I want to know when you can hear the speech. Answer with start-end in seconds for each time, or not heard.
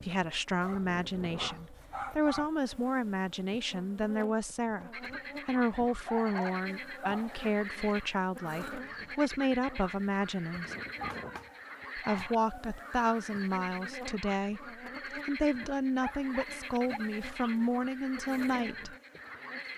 0.0-10.8, 11.9-18.9.